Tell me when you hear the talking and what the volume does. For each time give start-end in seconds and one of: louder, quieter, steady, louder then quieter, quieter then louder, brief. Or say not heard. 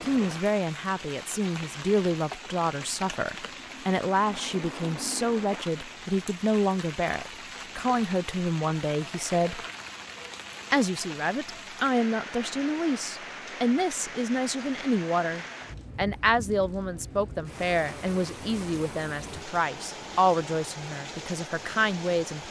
0.0-9.7 steady
10.7-22.4 steady.